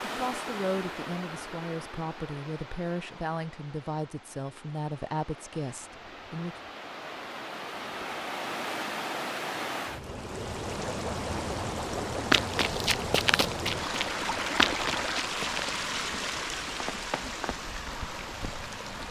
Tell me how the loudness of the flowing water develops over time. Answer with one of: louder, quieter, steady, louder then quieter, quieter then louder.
louder.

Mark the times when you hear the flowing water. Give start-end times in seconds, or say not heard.
0.0-19.0.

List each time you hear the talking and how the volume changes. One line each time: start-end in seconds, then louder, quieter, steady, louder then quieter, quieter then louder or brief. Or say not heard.
0.0-6.5 steady.